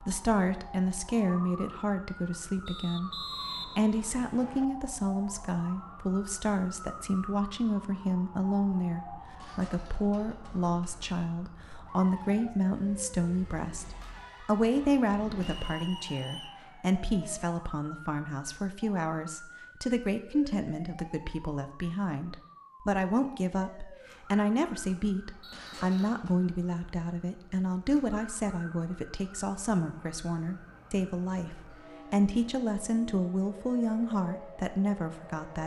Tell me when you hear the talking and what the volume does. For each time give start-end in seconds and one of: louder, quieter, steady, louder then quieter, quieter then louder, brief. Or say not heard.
0.0-35.6 steady.